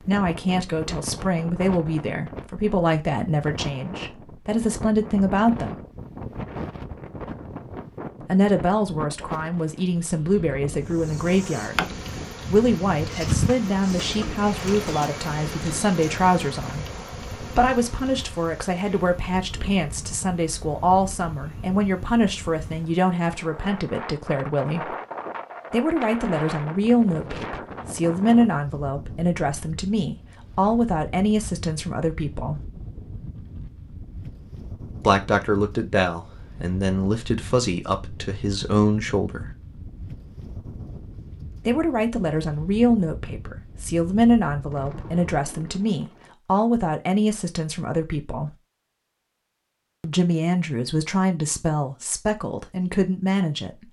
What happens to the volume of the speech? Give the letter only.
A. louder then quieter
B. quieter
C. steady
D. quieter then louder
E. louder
C.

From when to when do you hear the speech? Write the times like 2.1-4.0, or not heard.
0.0-5.8, 8.2-24.9, 25.7-32.6, 35.0-39.5, 41.6-48.5, 50.0-53.8.